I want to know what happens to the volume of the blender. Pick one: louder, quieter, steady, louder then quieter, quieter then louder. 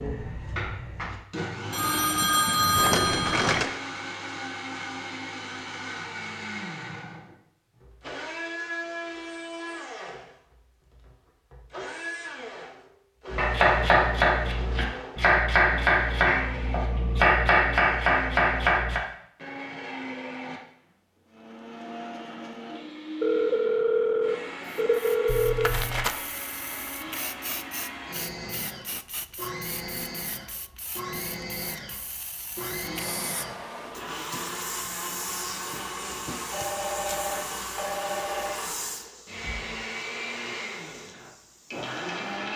steady.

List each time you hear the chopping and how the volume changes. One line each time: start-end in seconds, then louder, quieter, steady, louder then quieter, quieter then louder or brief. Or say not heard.
13.3-19.0 steady.